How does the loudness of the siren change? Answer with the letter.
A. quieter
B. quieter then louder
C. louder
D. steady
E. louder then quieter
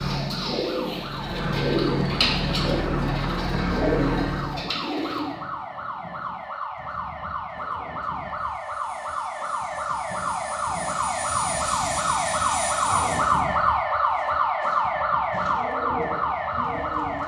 C.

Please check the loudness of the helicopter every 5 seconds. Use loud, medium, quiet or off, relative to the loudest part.
loud, quiet, medium, off.